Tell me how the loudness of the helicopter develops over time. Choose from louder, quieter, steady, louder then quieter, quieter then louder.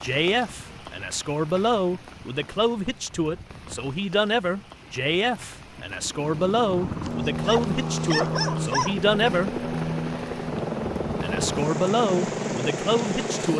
steady.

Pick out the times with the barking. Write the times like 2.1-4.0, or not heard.
7.0-8.9.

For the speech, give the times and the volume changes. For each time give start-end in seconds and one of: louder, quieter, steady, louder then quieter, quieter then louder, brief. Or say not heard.
0.0-9.5 steady
11.2-13.5 brief.